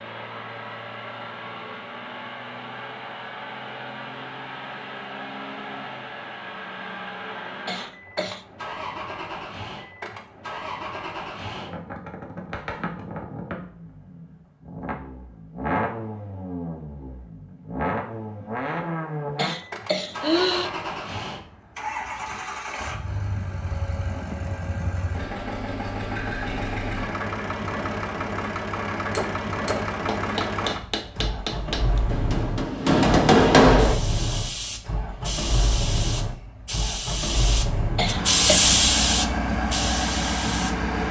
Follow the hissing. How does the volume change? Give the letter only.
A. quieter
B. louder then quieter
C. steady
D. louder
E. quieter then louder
B.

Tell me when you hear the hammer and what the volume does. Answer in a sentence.
You can hear the hammer from 29.1 to 34.0 s, getting louder.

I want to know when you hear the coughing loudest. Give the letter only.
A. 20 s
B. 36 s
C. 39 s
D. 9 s
A.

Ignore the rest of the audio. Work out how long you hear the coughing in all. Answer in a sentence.
You can hear the coughing for 3 seconds altogether.